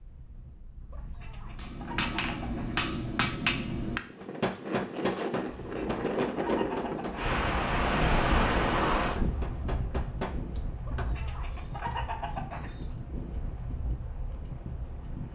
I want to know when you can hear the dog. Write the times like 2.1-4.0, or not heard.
not heard.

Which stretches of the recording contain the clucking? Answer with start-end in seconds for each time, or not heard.
0.9-2.9, 5.5-7.2, 10.8-12.8.